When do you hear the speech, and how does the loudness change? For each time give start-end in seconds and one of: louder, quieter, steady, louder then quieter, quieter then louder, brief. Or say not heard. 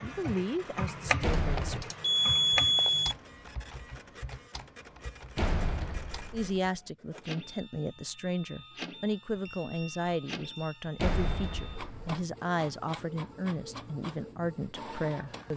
0.0-1.9 brief
6.3-15.5 steady.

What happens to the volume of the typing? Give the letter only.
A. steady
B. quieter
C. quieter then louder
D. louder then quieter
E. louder
B.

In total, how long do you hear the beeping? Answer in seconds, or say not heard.
3 s.